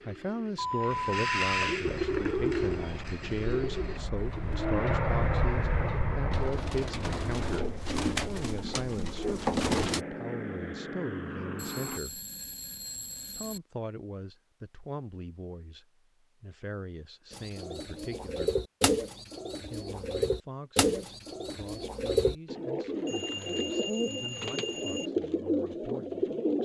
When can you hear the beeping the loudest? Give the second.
1 s.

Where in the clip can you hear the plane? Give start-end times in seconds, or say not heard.
1.9-12.0.